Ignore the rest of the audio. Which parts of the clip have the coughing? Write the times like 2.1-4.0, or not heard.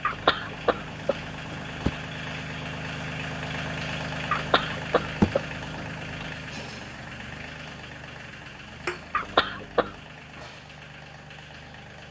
0.0-1.8, 4.3-6.3, 9.1-9.9.